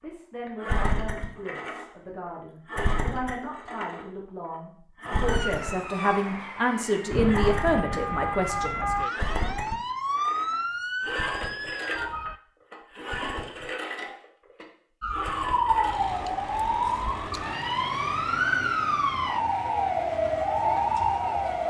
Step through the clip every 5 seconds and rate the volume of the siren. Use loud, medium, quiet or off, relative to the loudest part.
off, medium, medium, loud, loud.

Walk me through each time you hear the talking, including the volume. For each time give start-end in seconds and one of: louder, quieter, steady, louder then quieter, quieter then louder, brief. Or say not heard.
0.0-8.9 louder.